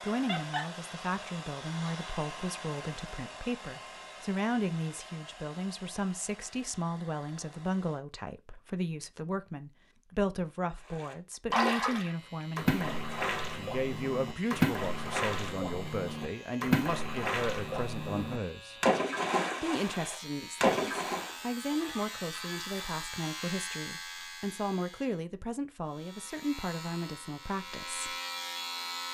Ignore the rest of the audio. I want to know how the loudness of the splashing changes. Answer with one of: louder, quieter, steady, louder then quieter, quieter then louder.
steady.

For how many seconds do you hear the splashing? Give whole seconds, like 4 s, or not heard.
10 s.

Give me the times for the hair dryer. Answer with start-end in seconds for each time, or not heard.
0.0-8.1.